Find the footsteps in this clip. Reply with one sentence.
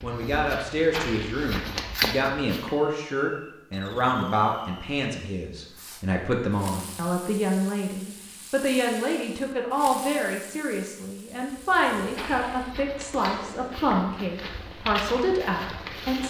You can hear the footsteps from 0.0 to 2.8 s and from 11.6 to 16.2 s.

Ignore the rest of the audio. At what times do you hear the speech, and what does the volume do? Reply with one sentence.
The speech can be heard from 0.0 to 16.2 s, at a steady volume.